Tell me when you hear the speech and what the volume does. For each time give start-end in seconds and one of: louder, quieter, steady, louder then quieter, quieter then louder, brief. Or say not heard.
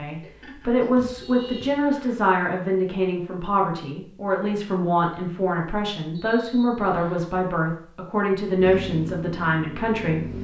0.0-10.4 steady.